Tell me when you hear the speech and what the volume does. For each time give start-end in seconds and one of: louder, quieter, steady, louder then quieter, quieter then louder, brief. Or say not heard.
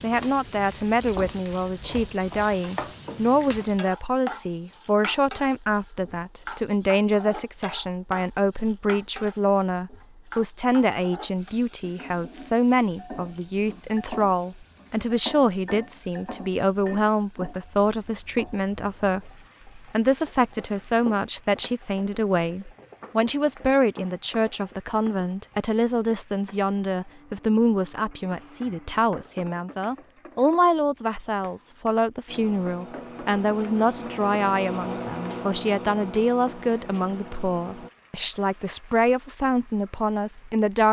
0.0-40.8 steady.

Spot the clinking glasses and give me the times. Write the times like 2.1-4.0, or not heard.
not heard.